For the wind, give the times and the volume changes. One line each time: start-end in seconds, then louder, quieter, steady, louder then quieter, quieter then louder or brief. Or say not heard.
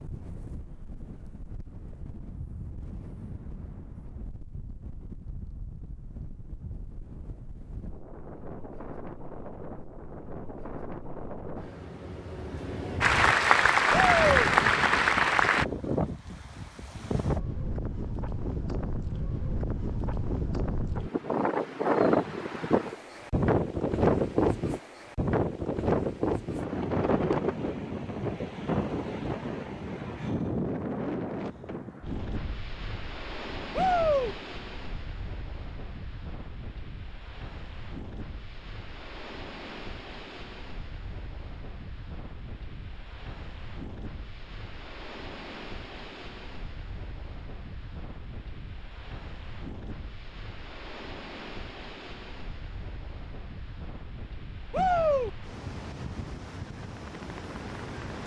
0.0-58.2 louder then quieter.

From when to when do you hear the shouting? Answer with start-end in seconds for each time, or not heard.
13.9-14.4, 33.8-34.4, 54.7-55.3.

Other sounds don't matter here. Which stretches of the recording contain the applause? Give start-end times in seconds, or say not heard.
13.0-15.7.